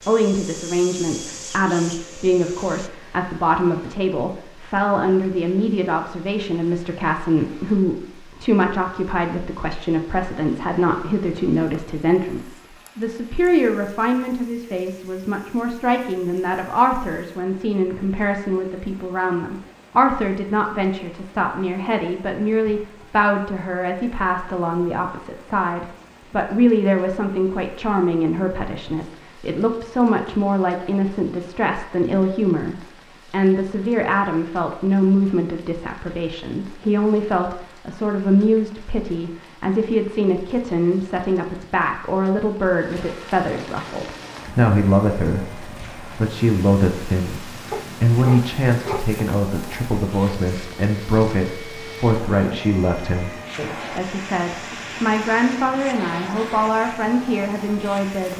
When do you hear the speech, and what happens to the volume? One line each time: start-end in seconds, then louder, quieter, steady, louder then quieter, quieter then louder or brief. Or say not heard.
0.1-58.3 steady.